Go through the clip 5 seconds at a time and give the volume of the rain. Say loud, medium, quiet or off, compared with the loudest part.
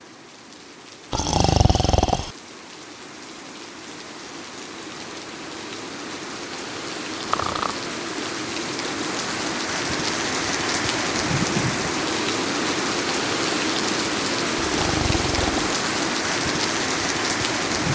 quiet, medium, loud, loud.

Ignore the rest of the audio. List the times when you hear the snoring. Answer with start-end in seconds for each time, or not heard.
1.1-2.4, 7.1-7.8, 14.6-15.8.